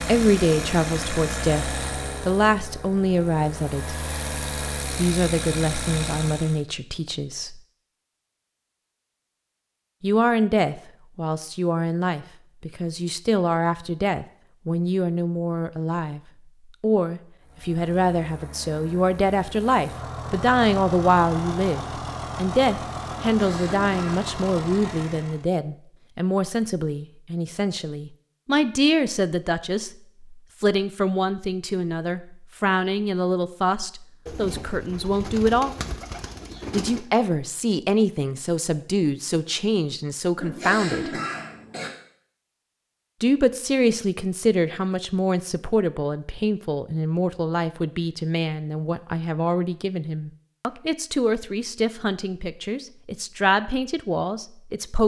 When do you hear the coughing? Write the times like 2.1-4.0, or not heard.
23.2-24.3, 40.4-41.9.